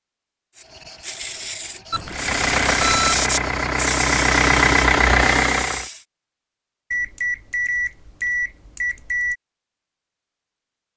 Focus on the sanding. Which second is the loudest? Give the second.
3 s.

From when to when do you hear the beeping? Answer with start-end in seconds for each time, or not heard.
1.9-3.2, 6.9-9.3.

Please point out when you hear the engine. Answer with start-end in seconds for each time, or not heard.
2.0-5.8.